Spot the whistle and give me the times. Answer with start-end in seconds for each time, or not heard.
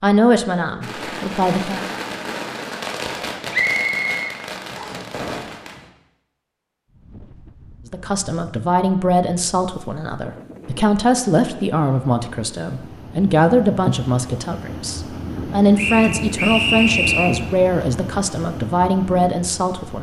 3.5-5.0, 15.8-17.4.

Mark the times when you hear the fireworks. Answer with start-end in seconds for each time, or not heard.
0.8-5.9.